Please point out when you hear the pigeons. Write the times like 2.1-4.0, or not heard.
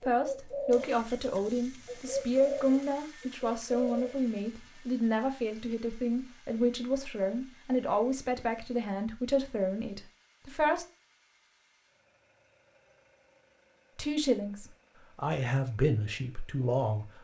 0.0-4.6.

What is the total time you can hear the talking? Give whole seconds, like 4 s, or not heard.
14 s.